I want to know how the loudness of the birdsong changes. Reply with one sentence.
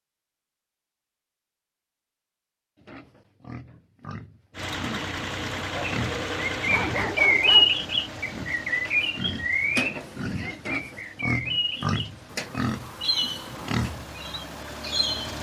The loudness of the birdsong goes down.